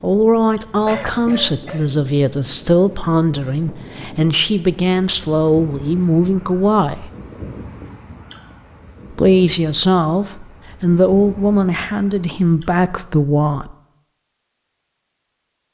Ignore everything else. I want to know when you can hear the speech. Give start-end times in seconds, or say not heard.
0.0-7.1, 9.2-13.8.